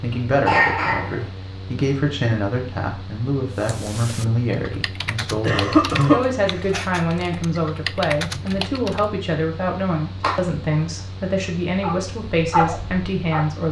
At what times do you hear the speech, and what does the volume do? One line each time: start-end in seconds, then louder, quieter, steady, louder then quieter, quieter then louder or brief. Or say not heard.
0.0-13.6 steady.